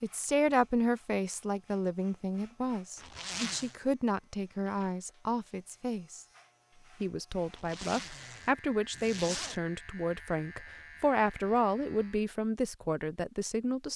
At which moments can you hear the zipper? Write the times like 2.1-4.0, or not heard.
3.0-3.8, 7.5-9.6.